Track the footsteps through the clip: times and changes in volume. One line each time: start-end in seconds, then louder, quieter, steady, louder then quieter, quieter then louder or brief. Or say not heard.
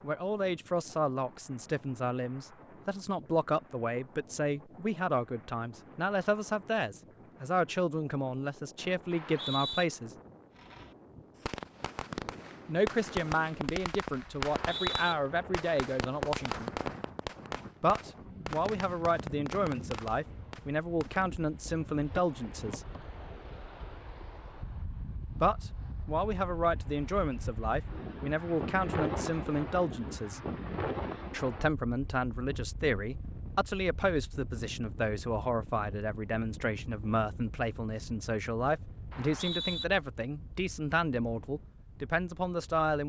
not heard.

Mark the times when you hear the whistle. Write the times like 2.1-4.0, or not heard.
9.1-9.8, 14.4-15.2, 39.1-39.9.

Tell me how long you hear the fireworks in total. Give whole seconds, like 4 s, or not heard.
11 s.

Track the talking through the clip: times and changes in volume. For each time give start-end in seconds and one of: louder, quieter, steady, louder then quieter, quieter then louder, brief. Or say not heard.
0.0-10.1 steady
12.7-16.7 steady
17.8-22.8 steady
25.4-30.4 steady
31.3-43.0 steady.